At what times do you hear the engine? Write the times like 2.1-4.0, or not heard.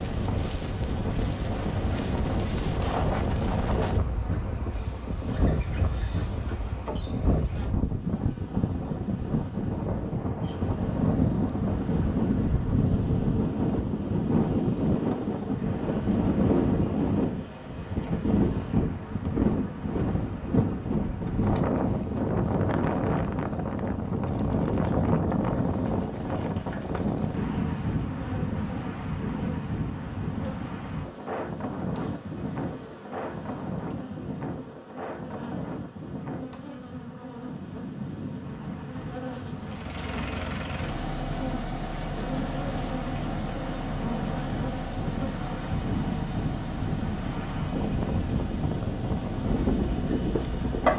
39.6-50.9.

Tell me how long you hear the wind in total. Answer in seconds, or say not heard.
51 s.